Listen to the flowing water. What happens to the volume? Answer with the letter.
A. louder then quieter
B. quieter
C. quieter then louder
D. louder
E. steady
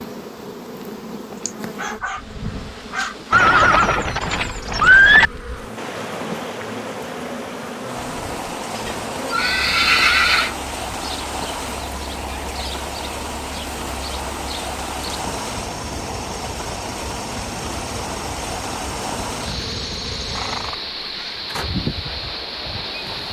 E.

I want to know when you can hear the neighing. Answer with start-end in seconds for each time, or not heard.
3.3-5.3, 8.0-10.6, 19.4-21.4.